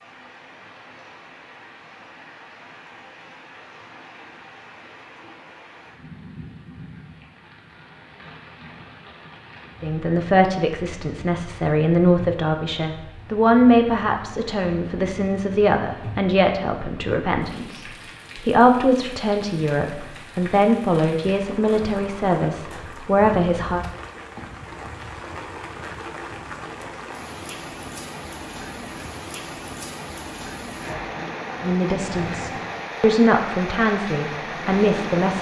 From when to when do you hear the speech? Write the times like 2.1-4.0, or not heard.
9.8-23.8, 31.6-35.3.